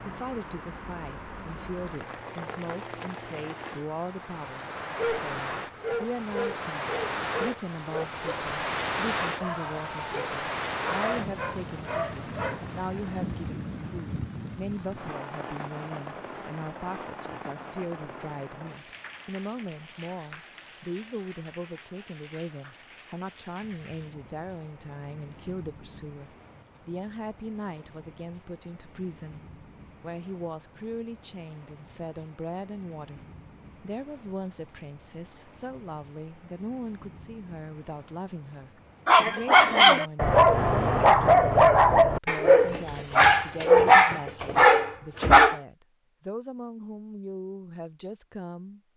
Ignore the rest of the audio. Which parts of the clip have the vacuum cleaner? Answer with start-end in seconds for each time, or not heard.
not heard.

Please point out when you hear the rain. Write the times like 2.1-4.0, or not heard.
0.0-40.3.